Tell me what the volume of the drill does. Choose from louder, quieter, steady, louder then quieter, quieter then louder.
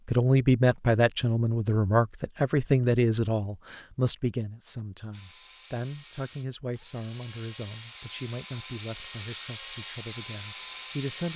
louder.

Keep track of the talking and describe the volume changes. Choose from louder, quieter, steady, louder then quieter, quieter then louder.
quieter.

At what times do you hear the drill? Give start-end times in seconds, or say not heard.
5.1-11.3.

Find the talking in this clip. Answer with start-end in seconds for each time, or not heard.
0.1-11.3.